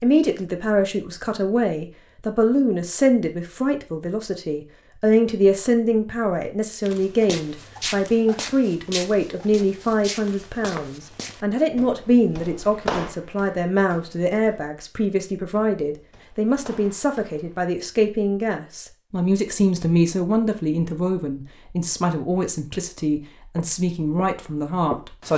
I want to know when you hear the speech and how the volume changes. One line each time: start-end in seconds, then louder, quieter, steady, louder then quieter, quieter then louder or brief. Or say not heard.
0.0-25.3 steady.